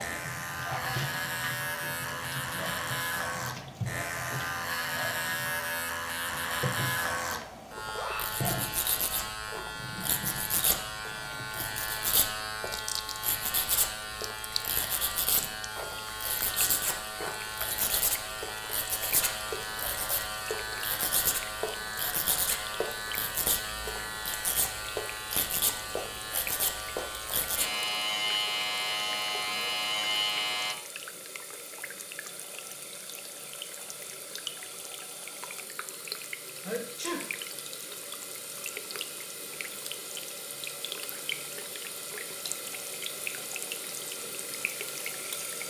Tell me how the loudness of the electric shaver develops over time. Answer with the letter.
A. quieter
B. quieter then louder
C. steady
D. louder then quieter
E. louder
C.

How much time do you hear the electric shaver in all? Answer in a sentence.
You can hear the electric shaver for 31 seconds altogether.